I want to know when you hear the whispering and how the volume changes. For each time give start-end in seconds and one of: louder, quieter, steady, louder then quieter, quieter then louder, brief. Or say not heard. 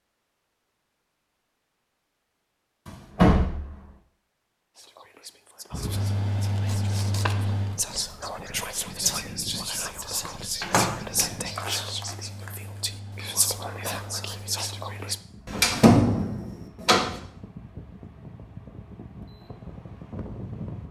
4.8-15.2 louder.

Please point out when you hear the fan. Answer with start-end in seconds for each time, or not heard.
5.7-20.8.